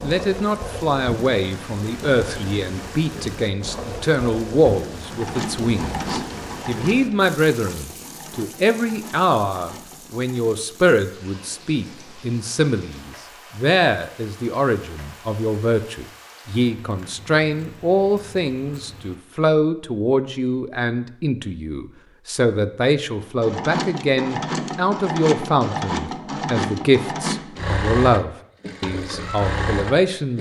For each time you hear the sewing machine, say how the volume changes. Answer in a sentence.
The sewing machine can be heard from 5.0 to 10.6 s, getting quieter; and from 23.2 to 30.3 s, at a steady volume.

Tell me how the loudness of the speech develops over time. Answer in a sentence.
The volume of the speech stays about the same.